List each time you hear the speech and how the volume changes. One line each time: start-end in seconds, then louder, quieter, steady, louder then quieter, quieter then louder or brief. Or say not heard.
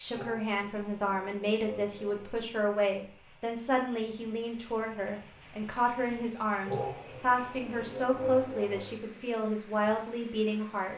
0.0-10.9 steady.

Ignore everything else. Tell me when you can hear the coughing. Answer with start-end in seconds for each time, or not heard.
0.1-2.4, 6.7-9.0.